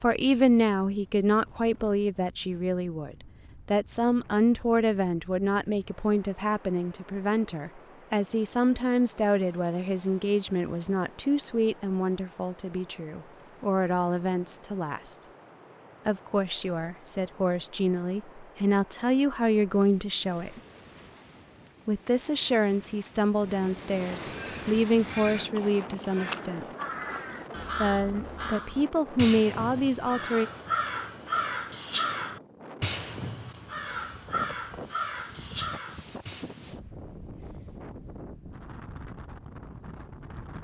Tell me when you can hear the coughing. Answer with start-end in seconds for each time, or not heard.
not heard.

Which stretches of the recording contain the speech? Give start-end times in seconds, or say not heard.
0.0-15.2, 16.1-20.6, 21.9-26.6, 27.8-30.5.